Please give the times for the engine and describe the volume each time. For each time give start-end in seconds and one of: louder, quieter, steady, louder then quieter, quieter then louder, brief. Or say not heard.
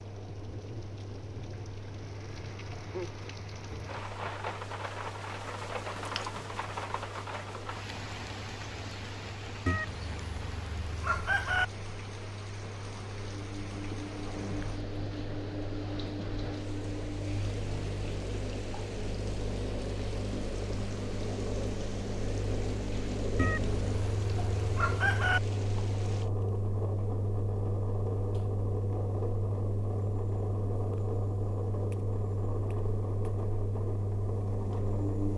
0.0-35.3 louder.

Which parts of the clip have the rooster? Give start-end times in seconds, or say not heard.
9.7-11.7, 23.4-25.4.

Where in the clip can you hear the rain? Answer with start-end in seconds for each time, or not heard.
0.0-26.3.